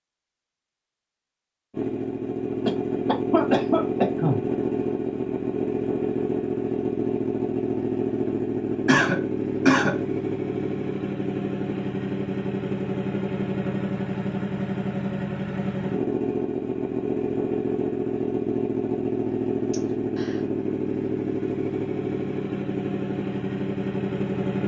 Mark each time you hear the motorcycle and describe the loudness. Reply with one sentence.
The motorcycle can be heard from 1.7 to 24.6 s, at a steady volume.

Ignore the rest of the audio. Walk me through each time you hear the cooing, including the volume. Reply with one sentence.
The cooing can't be heard in this clip.